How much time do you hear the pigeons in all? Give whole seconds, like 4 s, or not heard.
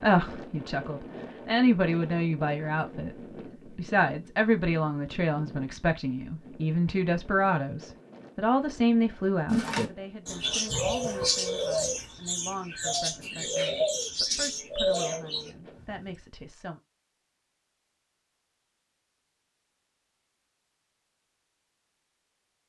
6 s.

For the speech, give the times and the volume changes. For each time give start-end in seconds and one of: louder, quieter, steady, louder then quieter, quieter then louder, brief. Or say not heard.
0.0-16.8 quieter.